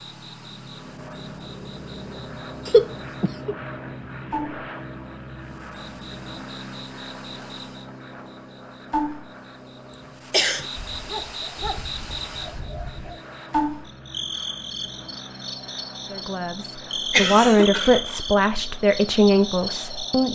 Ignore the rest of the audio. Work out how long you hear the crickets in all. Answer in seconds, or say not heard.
20 s.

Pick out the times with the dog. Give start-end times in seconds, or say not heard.
10.8-13.2.